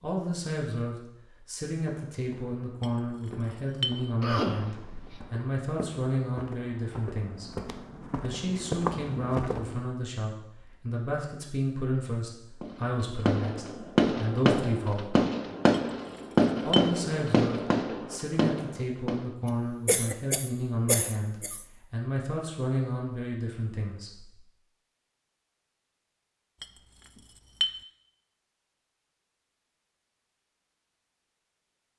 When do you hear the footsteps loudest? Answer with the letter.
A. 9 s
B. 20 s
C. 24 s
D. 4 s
A.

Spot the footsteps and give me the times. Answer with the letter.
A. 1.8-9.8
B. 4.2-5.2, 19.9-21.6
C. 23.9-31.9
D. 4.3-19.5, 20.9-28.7
A.